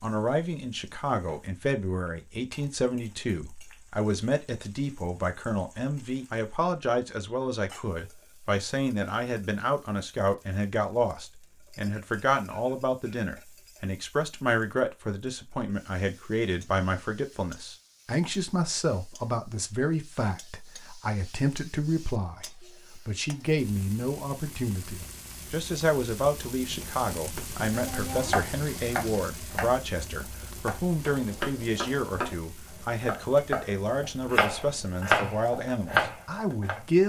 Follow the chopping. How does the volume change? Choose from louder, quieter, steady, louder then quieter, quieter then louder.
quieter then louder.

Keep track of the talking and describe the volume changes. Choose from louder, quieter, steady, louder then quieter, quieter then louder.
steady.